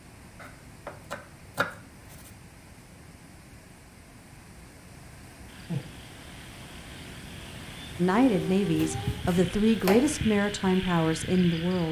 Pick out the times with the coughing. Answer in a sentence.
The coughing can't be heard in this clip.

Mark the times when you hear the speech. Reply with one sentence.
The speech can be heard from 8.0 to 11.8 s.